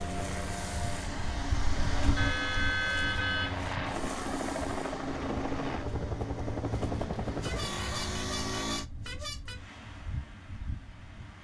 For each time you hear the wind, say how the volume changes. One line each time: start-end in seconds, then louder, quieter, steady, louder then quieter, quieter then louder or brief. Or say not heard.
0.0-11.3 quieter.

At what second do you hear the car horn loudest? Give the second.
3 s.